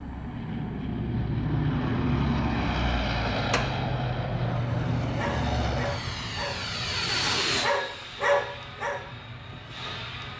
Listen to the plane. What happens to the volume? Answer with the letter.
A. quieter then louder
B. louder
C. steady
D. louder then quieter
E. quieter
E.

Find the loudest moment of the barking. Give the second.
8 s.